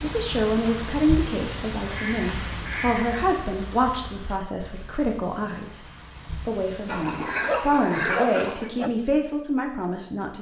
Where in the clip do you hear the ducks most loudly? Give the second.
8 s.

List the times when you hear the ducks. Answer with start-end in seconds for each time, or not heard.
1.9-3.2, 6.8-8.7.